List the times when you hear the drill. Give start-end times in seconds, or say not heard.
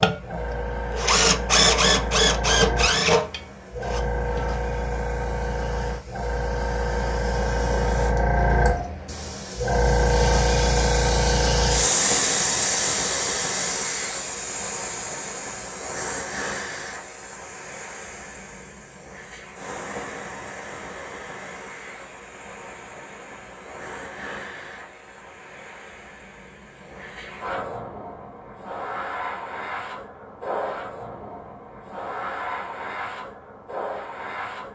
0.0-4.5.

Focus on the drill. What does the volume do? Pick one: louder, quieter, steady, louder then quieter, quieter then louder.
louder then quieter.